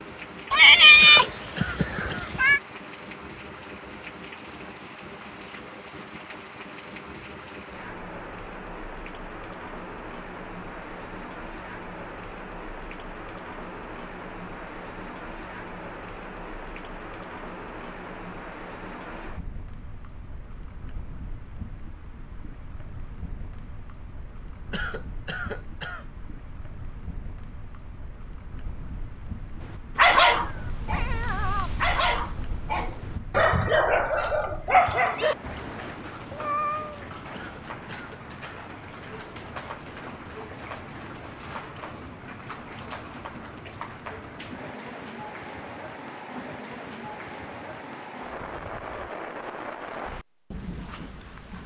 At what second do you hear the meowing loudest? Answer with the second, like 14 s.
1 s.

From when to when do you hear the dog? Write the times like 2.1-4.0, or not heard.
29.6-35.4.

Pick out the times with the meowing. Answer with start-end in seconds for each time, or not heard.
0.5-2.6, 30.4-31.7, 36.0-37.0.